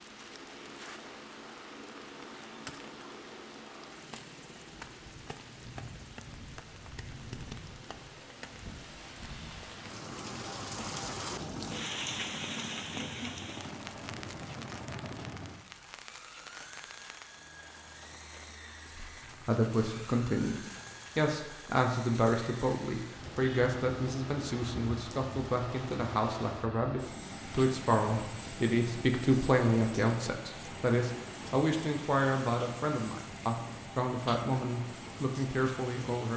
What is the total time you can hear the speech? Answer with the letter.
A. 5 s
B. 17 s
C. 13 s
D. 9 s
B.